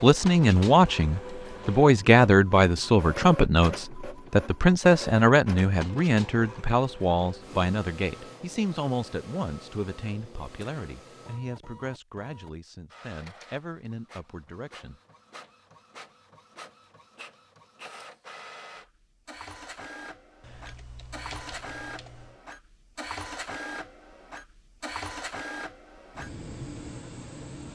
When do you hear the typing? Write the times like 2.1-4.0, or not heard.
20.4-22.4.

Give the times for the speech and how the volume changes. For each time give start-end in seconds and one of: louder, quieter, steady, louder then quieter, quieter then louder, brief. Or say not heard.
0.0-15.0 quieter.